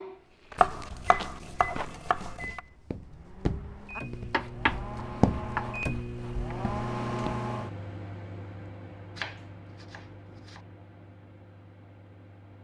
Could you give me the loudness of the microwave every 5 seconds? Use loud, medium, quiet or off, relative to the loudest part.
medium, loud, quiet.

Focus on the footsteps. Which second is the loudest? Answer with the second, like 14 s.
5 s.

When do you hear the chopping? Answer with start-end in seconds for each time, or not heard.
0.6-2.6, 4.3-6.5, 9.2-10.6.